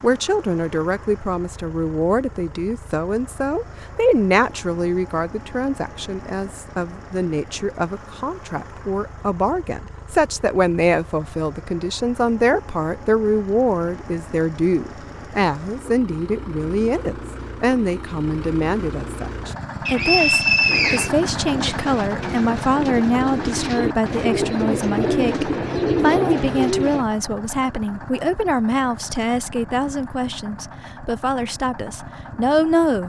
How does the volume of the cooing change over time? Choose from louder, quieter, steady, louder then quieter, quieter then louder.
louder.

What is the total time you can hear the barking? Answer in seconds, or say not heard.
not heard.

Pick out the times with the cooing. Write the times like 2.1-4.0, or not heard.
20.6-27.1.